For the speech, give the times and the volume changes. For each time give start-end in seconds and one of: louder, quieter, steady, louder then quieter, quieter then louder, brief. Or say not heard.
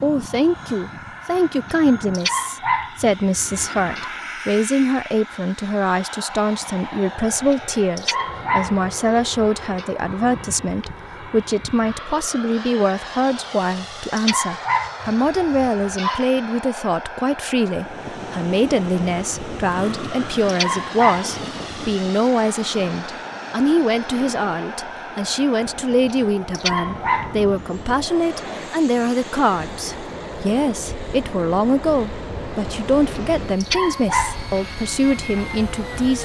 0.0-36.2 steady.